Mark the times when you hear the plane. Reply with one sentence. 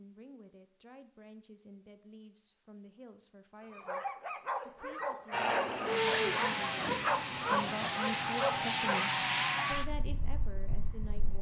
The plane can be heard from 5.3 to 11.3 s.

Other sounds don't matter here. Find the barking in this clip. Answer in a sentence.
You can hear the barking from 3.6 to 9.1 s.